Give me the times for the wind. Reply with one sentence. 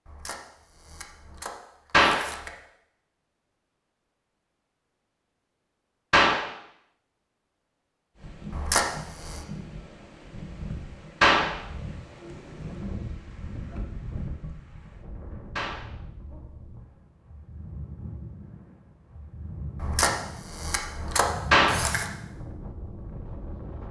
You can hear the wind from 8.2 to 23.8 s.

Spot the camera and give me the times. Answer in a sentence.
The camera can be heard from 0.1 to 2.5 s, from 8.5 to 9.4 s and from 19.8 to 22.1 s.